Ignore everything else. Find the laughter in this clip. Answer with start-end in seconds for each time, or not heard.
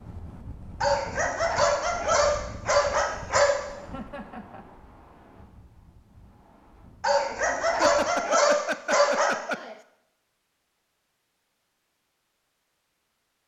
3.8-4.7, 7.8-9.8.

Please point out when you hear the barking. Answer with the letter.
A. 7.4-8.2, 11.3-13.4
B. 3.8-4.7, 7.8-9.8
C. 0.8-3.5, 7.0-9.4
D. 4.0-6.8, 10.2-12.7
C.